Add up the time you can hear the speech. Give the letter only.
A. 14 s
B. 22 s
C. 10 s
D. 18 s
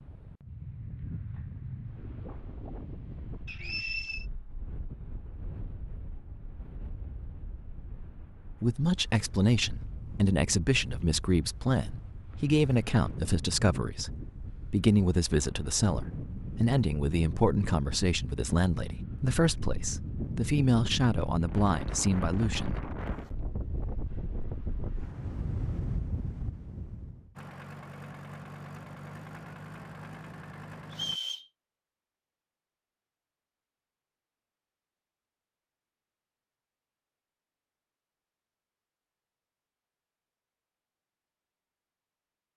A.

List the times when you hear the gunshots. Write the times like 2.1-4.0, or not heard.
not heard.